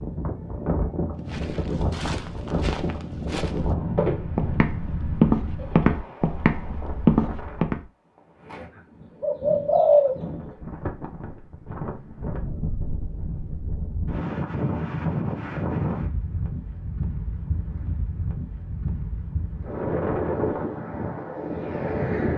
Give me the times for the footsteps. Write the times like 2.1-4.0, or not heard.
1.2-7.8.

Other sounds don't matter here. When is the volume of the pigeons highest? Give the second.
10 s.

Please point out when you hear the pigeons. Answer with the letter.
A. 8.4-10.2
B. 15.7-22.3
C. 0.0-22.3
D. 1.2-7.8
A.